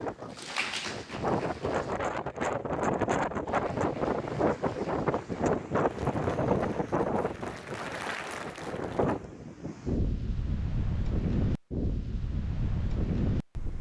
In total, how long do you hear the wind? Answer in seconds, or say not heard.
14 s.